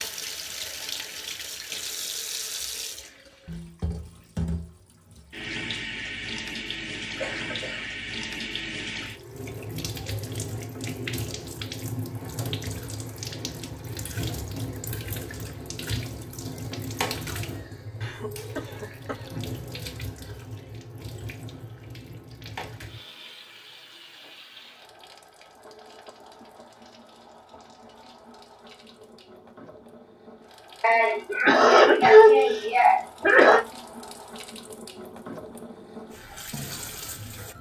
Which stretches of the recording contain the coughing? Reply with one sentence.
The coughing can be heard from 7.2 to 7.9 s, from 18.0 to 19.6 s and from 30.8 to 33.6 s.